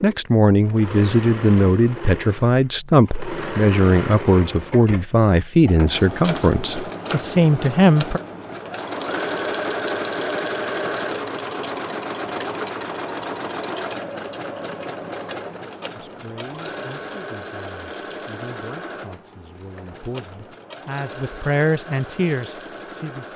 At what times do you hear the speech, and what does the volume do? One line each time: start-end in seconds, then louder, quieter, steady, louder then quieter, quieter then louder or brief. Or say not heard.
0.0-8.2 steady
15.9-23.3 louder.